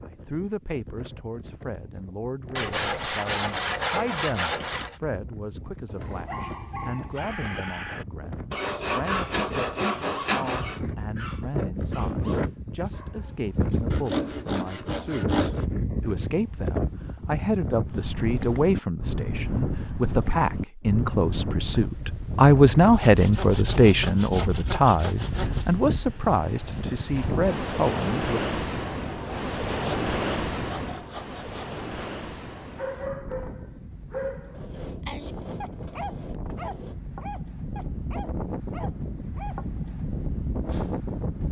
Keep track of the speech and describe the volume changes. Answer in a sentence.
The volume of the speech goes up.